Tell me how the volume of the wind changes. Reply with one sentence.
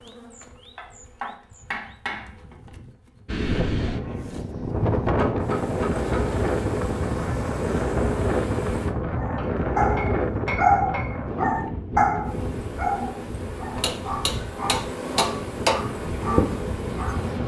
The volume of the wind goes down.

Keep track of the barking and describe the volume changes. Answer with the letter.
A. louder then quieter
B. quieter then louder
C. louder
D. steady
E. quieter
E.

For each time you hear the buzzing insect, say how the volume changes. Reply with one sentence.
You can hear the buzzing insect from 0.0 to 8.9 s, getting louder; and from 12.2 to 17.4 s, getting louder.